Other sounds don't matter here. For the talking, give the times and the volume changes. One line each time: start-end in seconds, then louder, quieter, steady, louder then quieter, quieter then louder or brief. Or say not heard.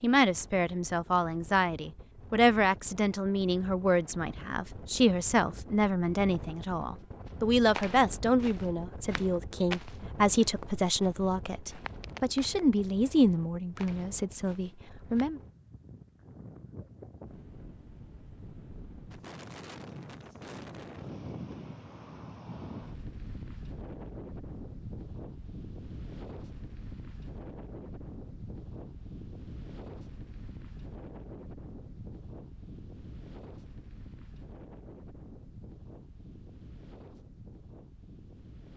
0.0-15.4 steady.